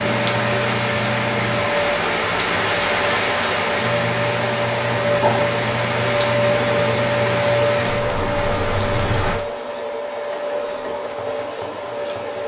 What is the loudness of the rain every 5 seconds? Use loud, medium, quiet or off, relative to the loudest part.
loud, loud, off.